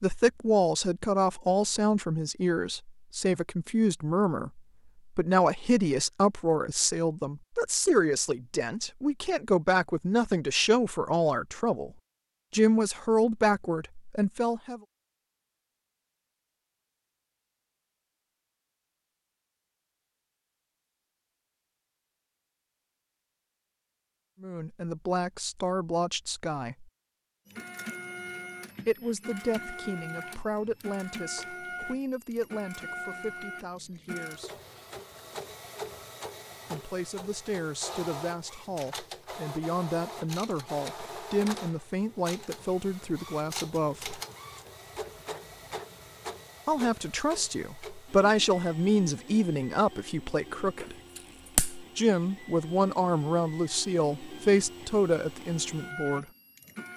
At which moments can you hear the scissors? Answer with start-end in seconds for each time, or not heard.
50.8-51.9.